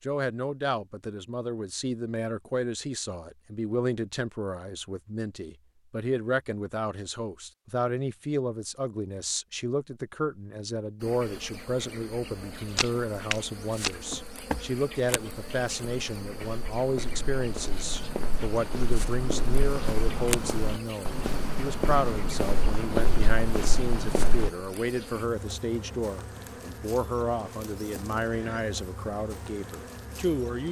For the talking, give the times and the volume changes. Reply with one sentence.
The talking can be heard from 0.0 to 30.6 s, at a steady volume.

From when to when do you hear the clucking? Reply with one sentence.
You can't hear the clucking here.